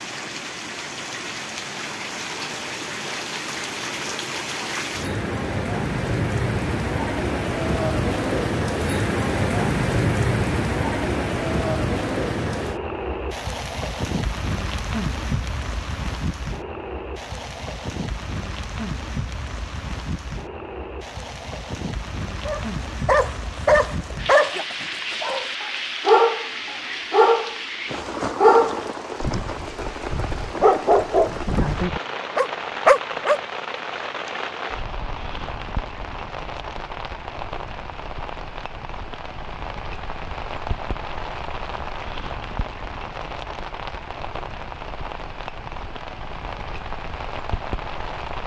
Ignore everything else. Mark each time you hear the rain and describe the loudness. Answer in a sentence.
You can hear the rain from 0.0 to 48.4 s, getting quieter.